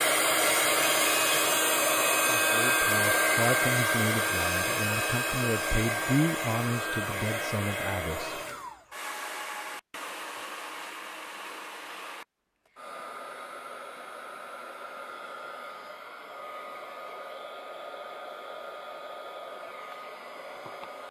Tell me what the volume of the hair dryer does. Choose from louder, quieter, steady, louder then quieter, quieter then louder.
quieter.